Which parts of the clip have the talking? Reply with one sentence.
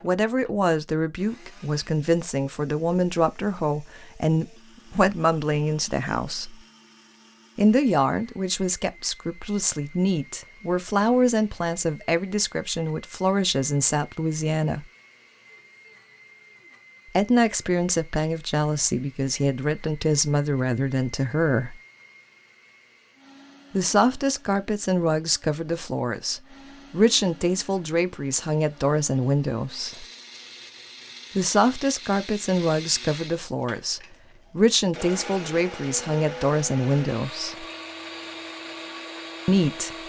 You can hear the talking from 0.0 to 6.5 s, from 7.5 to 14.8 s, from 17.1 to 21.8 s, from 23.7 to 30.1 s, from 31.4 to 37.6 s and from 39.5 to 40.0 s.